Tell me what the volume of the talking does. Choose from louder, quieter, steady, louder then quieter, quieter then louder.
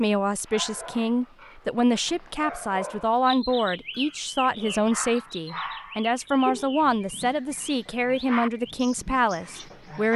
steady.